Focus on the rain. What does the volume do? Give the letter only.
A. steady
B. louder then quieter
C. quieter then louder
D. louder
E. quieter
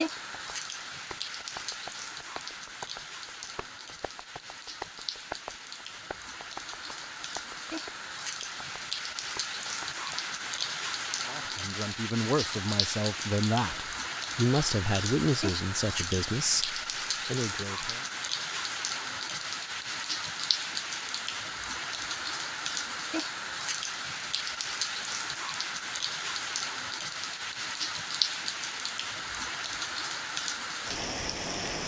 D.